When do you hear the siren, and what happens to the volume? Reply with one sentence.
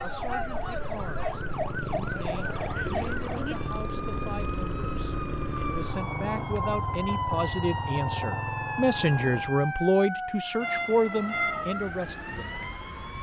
The siren can be heard from 0.0 to 13.1 s, at a steady volume.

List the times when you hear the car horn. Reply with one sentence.
You can hear the car horn from 10.6 to 11.7 s.